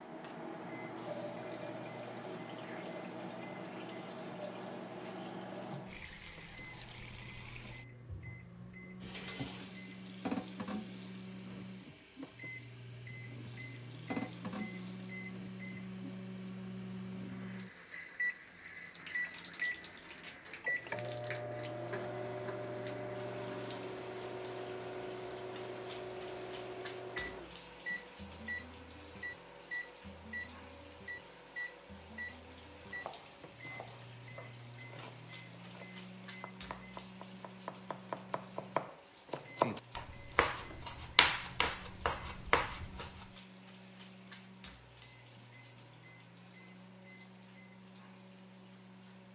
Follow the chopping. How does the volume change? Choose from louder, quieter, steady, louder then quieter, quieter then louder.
louder.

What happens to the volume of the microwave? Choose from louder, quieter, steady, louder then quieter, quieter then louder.
louder then quieter.